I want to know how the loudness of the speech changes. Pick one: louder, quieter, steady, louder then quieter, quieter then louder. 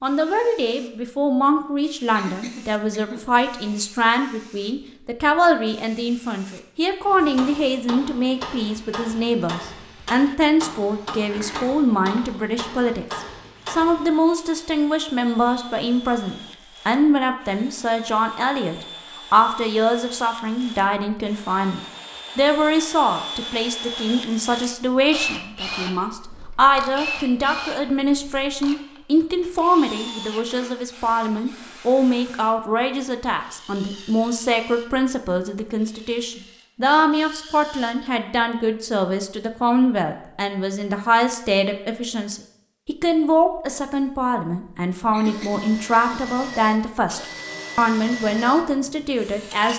steady.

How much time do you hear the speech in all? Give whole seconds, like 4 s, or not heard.
50 s.